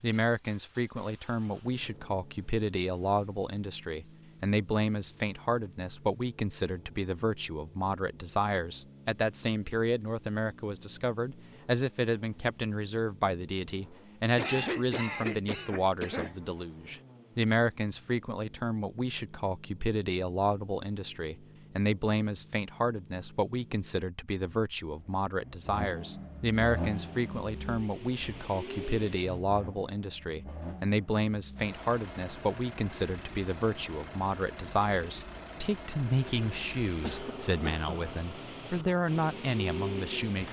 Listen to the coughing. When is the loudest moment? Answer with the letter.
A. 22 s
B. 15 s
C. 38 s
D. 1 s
B.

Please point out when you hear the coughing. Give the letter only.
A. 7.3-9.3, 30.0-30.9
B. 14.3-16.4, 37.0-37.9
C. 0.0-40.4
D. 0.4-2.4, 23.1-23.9
B.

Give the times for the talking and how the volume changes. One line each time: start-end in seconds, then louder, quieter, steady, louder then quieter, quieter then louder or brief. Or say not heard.
0.0-40.4 steady.